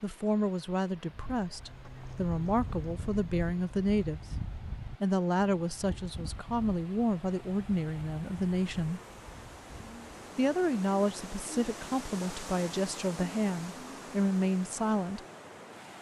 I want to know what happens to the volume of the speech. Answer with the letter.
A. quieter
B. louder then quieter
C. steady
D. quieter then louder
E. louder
C.